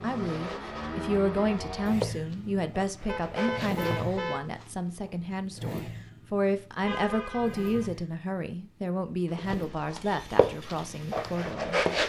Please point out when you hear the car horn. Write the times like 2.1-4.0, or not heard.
3.0-4.5, 6.8-7.9.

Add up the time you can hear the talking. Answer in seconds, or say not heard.
12 s.